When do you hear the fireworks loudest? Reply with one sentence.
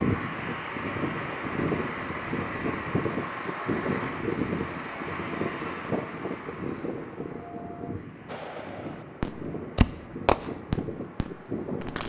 The loudest moment of the fireworks is at 10 seconds.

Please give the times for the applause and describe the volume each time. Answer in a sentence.
You can hear the applause from 0.0 to 11.9 s, getting quieter.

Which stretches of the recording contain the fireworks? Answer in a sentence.
You can hear the fireworks from 8.2 to 12.0 s.